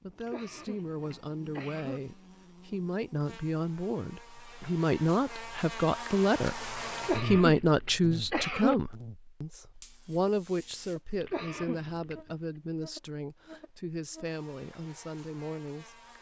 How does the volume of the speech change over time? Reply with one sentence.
The loudness of the speech goes up, then down.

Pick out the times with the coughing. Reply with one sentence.
You can hear the coughing from 0.2 to 2.0 s, from 7.0 to 8.8 s and from 11.2 to 12.2 s.